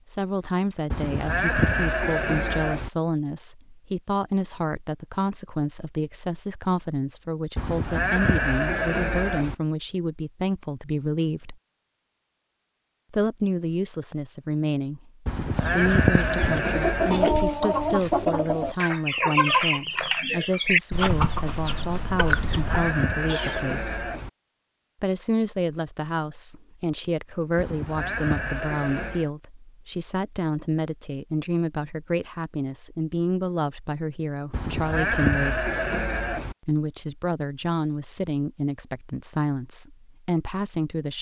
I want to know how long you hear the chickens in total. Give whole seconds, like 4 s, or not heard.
8 s.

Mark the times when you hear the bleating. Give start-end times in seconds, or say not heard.
0.9-2.9, 7.5-9.6, 15.2-17.2, 22.3-24.3, 27.6-29.3, 34.5-36.5.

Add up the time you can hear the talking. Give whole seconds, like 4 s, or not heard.
38 s.